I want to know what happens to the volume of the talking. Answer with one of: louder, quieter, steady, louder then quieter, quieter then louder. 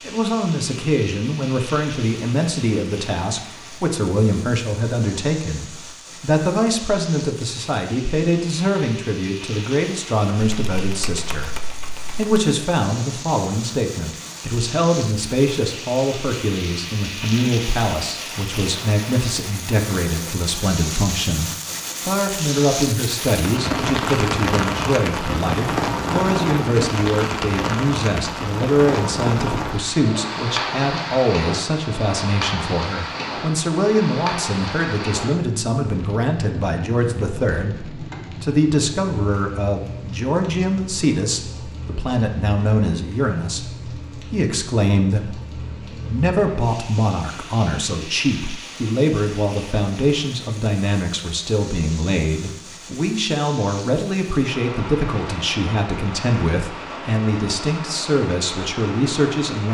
steady.